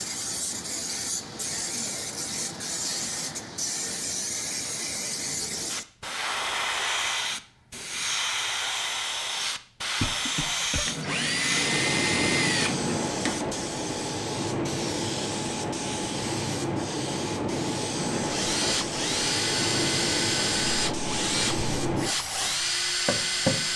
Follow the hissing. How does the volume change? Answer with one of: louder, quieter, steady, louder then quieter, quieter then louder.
steady.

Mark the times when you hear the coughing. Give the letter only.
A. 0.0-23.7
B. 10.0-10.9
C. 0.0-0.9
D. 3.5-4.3
B.